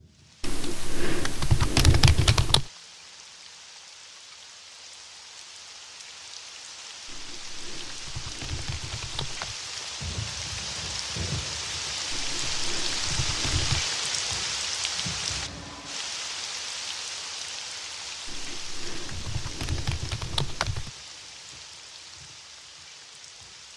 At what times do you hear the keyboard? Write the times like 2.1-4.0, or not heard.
0.4-2.7, 7.0-9.6, 12.1-13.9, 18.2-20.9.